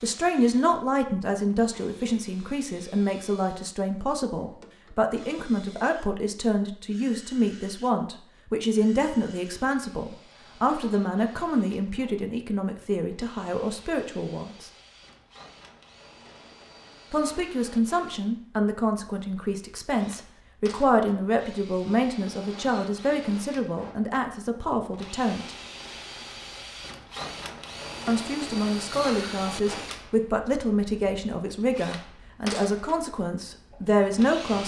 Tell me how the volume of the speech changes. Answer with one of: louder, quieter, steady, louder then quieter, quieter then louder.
steady.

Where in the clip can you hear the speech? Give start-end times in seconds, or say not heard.
0.0-14.7, 17.1-25.6, 28.1-34.6.